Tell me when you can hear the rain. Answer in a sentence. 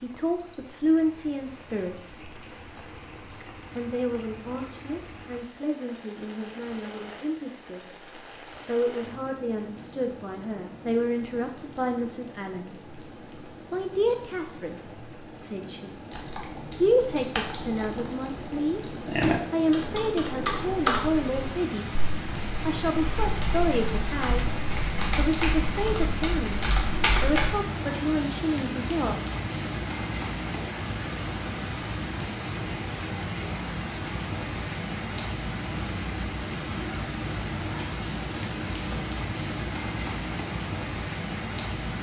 The rain can be heard from 0.0 to 41.9 s.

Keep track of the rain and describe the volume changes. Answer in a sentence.
The loudness of the rain goes up.